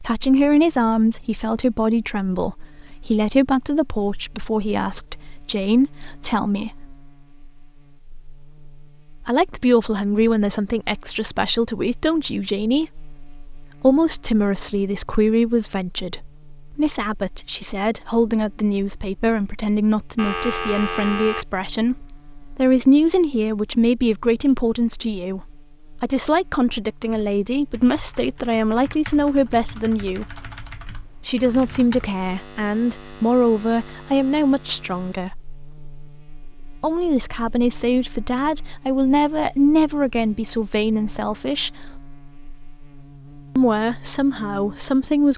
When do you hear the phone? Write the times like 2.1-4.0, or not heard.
20.1-21.4.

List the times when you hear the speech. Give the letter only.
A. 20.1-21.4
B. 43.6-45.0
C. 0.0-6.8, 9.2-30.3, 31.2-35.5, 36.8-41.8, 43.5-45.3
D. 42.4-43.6
C.